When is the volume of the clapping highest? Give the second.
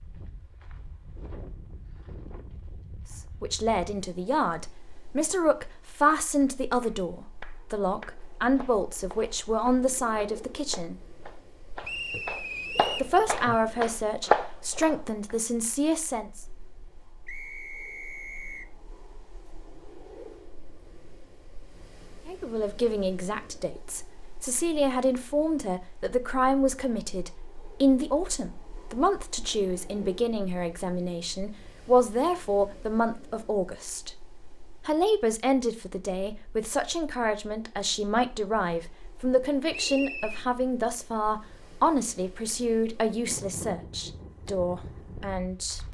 14 s.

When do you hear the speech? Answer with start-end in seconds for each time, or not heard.
3.1-11.0, 13.0-16.4, 22.2-34.1, 34.8-45.8.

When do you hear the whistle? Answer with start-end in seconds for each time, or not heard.
11.8-13.1, 17.2-18.6, 39.7-40.5.